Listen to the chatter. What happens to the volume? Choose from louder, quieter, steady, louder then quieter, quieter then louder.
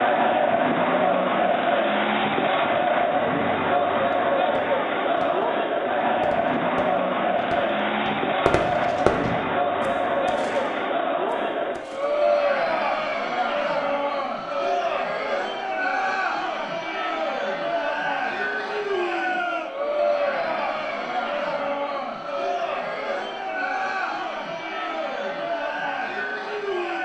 quieter.